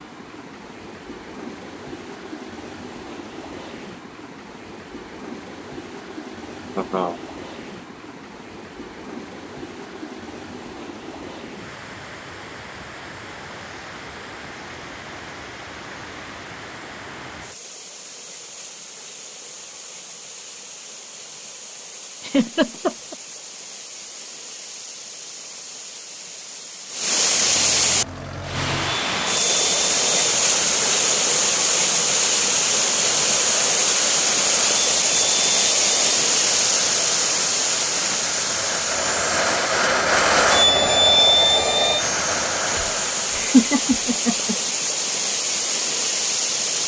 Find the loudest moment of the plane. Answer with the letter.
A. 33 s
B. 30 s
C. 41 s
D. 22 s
C.